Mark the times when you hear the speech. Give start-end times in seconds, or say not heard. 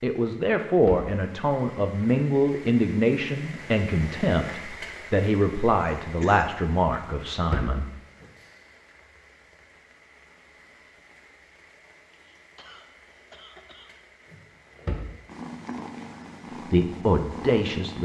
0.0-7.8, 16.7-17.9.